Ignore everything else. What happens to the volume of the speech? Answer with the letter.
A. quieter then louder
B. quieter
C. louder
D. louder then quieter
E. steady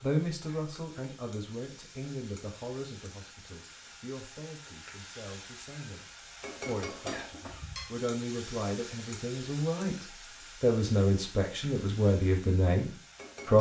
A.